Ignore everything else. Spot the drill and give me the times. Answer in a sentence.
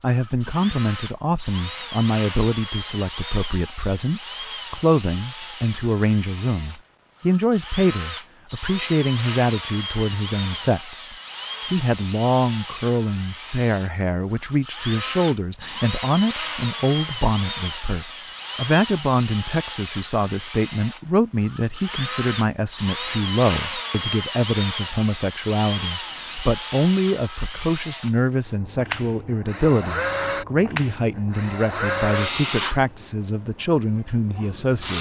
The drill can be heard from 0.1 to 34.9 s.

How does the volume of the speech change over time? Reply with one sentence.
The loudness of the speech stays about the same.